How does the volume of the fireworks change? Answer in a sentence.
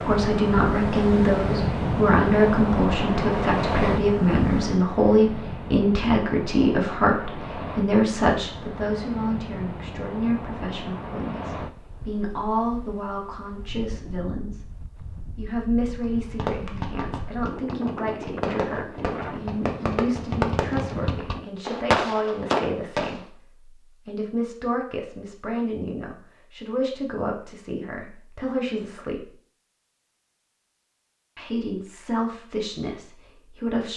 The loudness of the fireworks goes up.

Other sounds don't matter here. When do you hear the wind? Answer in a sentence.
You can hear the wind from 0.0 to 21.4 s.